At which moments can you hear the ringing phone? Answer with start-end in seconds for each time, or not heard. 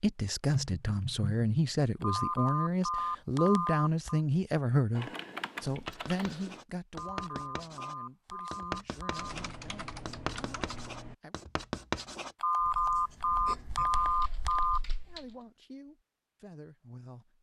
2.0-4.2, 7.0-9.3, 12.4-14.8.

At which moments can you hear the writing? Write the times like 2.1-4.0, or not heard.
5.7-14.2.